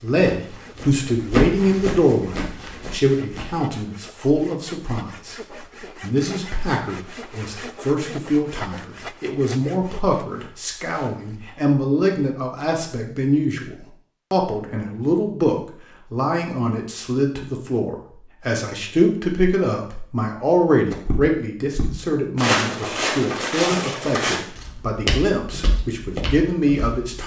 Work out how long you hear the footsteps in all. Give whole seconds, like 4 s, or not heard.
10 s.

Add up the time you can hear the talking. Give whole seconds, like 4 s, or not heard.
27 s.